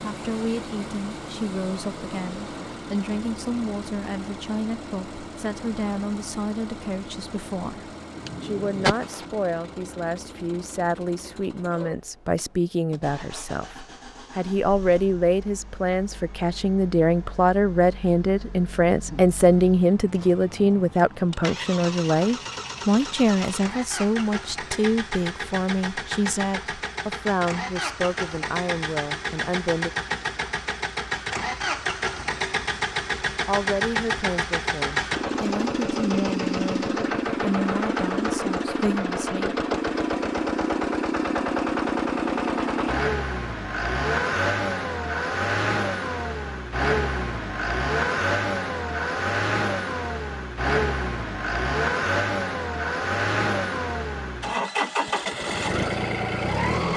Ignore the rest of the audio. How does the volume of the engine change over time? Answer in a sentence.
The volume of the engine goes up.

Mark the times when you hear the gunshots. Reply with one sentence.
You can hear the gunshots from 8.2 to 9.2 s.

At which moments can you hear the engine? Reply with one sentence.
You can hear the engine from 0.0 to 56.9 s.